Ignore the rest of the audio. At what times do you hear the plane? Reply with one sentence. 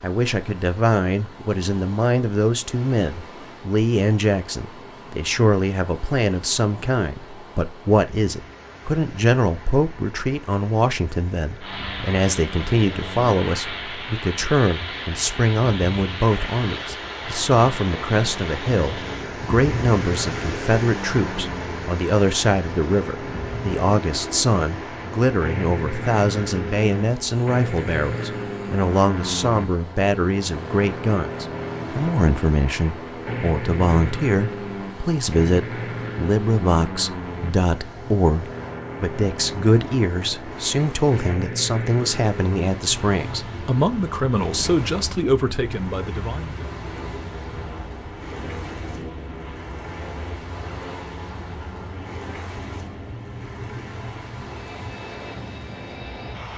The plane can be heard from 11.6 to 56.5 s.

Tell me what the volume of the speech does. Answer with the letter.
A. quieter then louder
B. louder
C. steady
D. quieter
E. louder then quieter
C.